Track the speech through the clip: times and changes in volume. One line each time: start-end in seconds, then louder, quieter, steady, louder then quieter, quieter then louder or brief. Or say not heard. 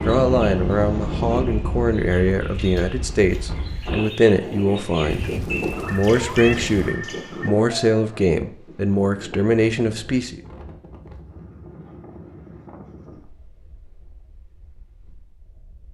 0.1-10.4 steady.